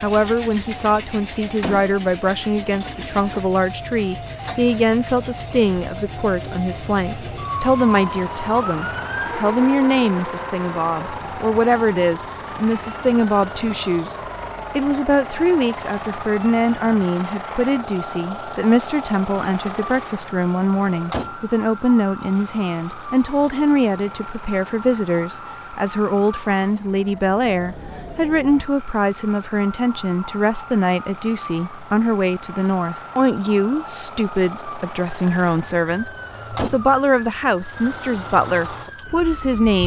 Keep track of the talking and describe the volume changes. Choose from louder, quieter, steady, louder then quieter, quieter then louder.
steady.